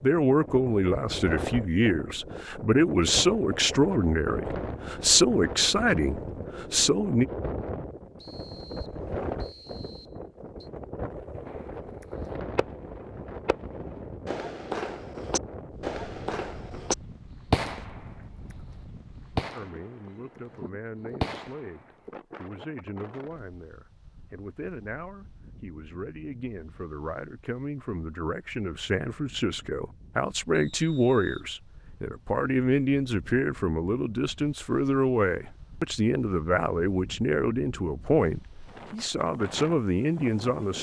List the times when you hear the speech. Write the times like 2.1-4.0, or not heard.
0.0-7.2, 19.6-40.7.